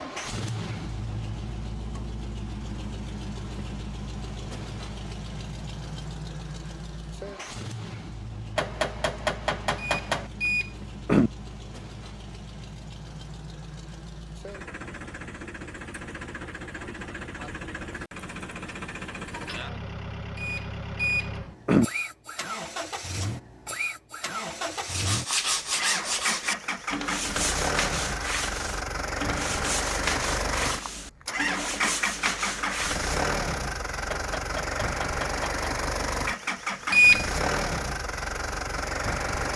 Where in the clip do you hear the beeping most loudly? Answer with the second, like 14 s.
37 s.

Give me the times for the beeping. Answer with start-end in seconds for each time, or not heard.
9.8-11.3, 20.4-21.9, 36.9-37.4.